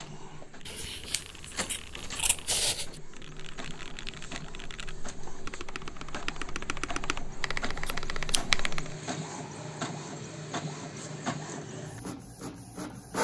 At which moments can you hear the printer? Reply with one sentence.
You can hear the printer from 0.0 to 13.1 s.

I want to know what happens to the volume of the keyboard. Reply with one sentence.
The loudness of the keyboard goes up.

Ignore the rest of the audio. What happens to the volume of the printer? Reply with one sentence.
The loudness of the printer goes up.